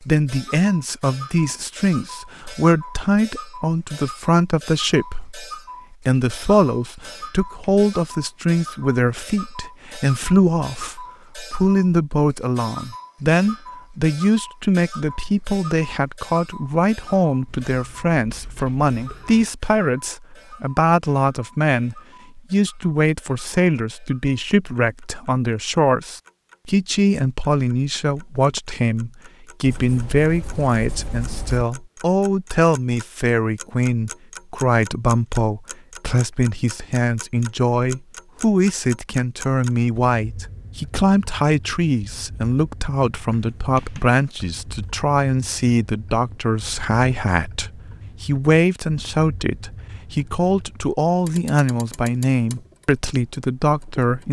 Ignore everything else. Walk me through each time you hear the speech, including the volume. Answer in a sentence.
You can hear the speech from 0.0 to 54.2 s, at a steady volume.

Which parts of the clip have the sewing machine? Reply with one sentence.
The sewing machine can't be heard in this clip.